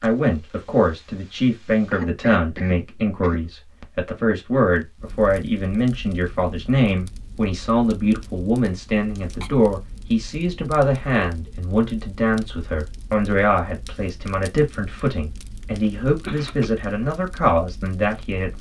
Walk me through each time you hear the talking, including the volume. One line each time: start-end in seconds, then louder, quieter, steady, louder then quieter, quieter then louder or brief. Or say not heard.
0.0-18.5 steady.